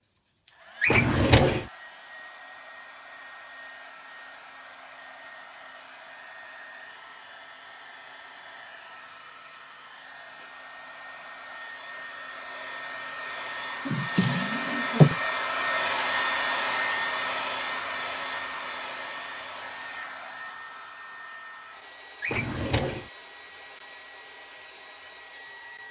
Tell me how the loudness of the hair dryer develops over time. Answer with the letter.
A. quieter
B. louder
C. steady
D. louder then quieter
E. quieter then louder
D.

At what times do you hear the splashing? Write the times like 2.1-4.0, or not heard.
not heard.